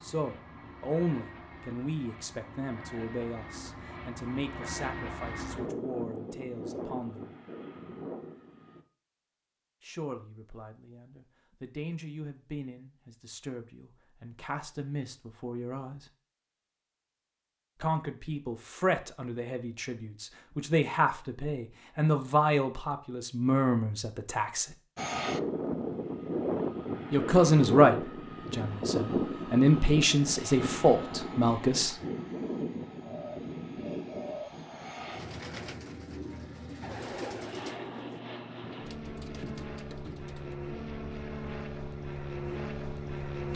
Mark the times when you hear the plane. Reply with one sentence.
You can hear the plane from 0.0 to 8.8 s and from 24.9 to 43.5 s.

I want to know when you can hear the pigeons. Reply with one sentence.
The pigeons can be heard from 33.0 to 40.6 s.